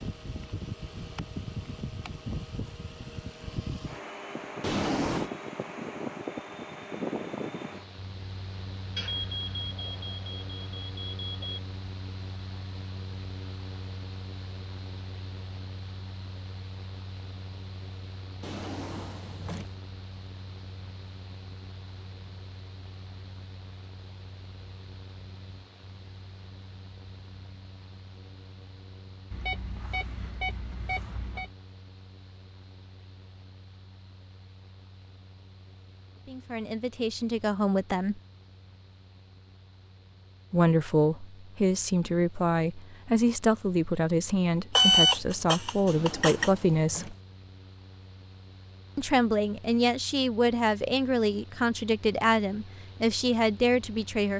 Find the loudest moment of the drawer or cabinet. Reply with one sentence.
The volume of the drawer or cabinet peaks at 5 seconds.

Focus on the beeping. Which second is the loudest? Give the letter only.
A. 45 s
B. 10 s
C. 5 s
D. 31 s
A.